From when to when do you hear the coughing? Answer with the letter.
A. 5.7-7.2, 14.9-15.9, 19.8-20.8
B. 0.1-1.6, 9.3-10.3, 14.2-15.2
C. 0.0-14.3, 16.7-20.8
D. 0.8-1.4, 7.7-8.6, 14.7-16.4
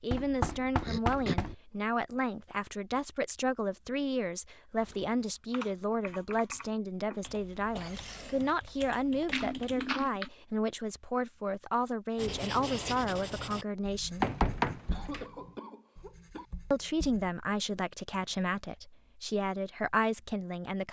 D.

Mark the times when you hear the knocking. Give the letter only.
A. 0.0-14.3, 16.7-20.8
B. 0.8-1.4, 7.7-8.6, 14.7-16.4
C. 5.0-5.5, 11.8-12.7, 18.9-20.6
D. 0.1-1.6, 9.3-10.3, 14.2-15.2
D.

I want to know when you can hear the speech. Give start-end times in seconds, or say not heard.
0.0-14.3, 16.7-20.8.